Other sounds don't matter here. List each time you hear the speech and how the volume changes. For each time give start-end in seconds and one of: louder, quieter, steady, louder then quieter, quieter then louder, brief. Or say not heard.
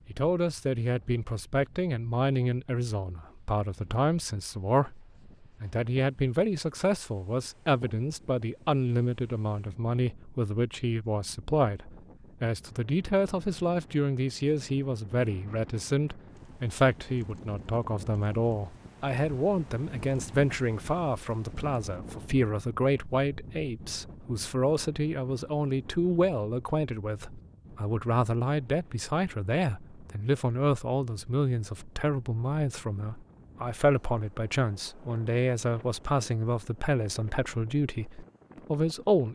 0.1-39.2 steady.